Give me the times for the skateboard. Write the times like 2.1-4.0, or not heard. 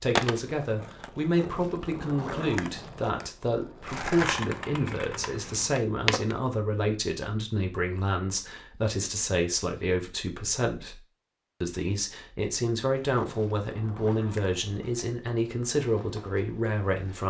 0.1-6.4, 12.9-17.2.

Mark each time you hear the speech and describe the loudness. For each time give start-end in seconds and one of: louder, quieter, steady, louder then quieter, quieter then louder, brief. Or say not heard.
0.0-11.0 steady
11.6-17.2 steady.